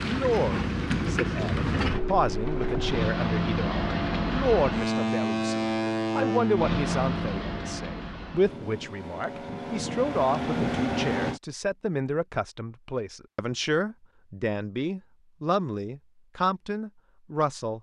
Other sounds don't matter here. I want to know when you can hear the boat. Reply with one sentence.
The boat can be heard from 0.0 to 11.4 s.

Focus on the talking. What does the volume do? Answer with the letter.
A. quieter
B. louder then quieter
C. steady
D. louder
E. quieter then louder
C.